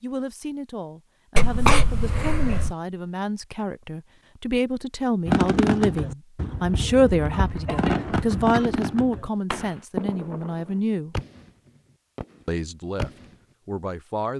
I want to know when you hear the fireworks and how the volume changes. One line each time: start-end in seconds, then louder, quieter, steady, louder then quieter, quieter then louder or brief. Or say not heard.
5.2-13.3 quieter.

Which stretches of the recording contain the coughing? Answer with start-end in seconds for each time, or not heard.
1.4-2.8, 7.5-8.7.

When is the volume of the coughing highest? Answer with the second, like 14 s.
2 s.